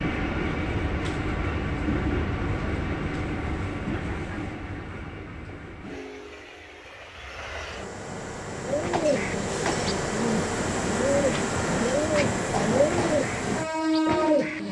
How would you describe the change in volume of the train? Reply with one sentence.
The volume of the train goes down, then up.